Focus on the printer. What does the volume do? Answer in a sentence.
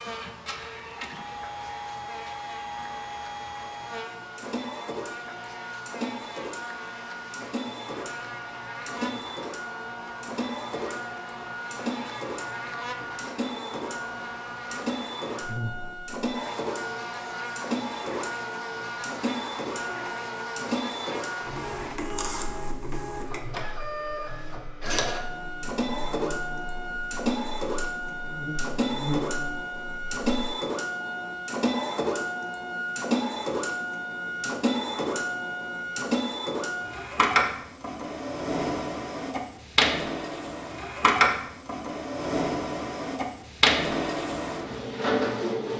The volume of the printer goes up.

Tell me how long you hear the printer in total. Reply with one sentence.
You can hear the printer for 46 seconds altogether.